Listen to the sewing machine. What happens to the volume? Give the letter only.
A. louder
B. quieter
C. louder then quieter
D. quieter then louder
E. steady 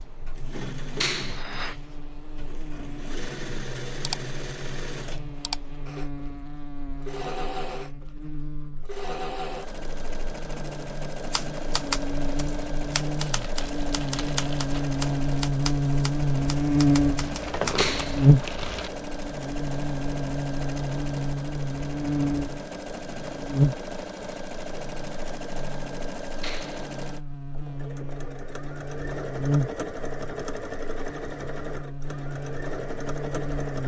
E.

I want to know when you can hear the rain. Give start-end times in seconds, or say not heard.
not heard.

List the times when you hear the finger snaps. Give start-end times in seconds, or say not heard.
1.0-1.4, 17.8-18.2, 26.4-26.9.